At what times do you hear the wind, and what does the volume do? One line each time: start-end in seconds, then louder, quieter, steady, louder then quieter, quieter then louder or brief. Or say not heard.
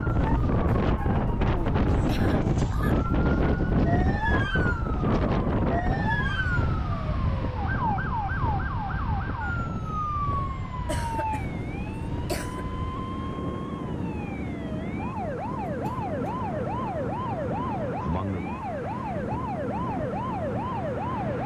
0.0-21.4 quieter.